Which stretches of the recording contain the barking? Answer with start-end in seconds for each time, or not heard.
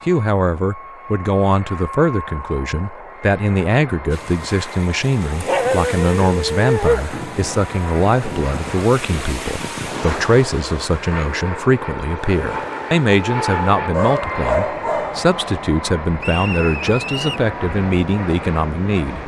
5.5-7.0, 13.9-15.2.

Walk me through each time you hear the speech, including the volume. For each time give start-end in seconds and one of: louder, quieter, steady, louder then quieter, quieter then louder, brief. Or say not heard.
0.1-19.2 steady.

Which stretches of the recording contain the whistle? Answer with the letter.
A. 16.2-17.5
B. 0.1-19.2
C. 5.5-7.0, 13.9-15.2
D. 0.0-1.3
A.